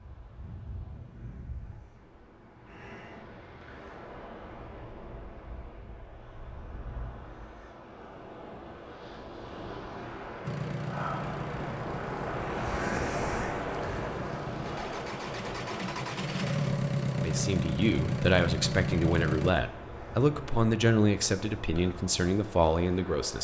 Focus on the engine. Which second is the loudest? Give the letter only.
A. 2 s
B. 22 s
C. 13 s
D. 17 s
D.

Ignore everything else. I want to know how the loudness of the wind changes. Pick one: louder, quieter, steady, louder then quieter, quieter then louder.
louder then quieter.